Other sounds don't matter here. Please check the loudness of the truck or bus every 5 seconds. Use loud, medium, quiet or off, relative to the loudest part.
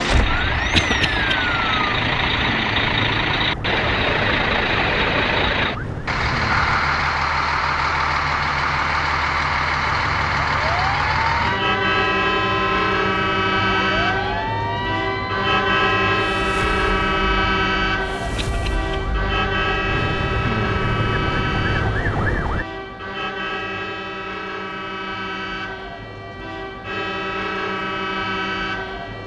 loud, loud, loud, loud, medium, medium.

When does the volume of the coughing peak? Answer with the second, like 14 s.
1 s.